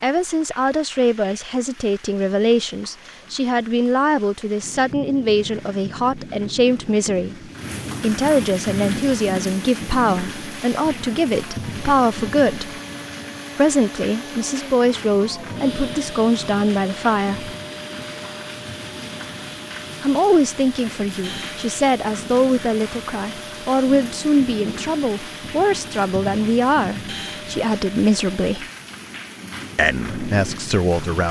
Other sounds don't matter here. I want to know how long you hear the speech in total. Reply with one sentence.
The speech can be heard for 26 seconds in total.